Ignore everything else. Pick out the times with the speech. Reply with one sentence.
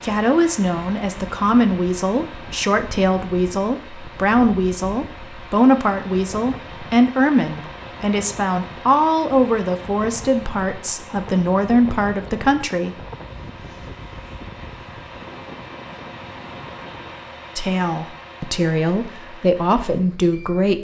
You can hear the speech from 0.0 to 12.9 s and from 17.6 to 20.7 s.